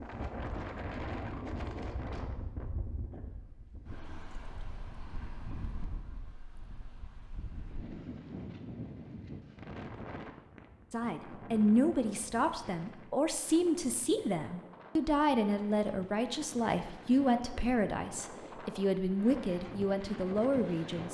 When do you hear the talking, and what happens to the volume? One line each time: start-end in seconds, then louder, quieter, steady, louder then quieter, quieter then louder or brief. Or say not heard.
10.9-21.0 steady.